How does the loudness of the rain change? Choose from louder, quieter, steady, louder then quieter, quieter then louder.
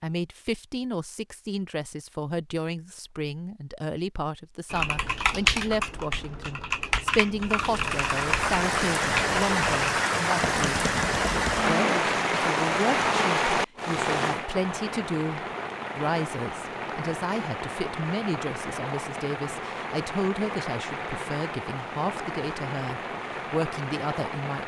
quieter.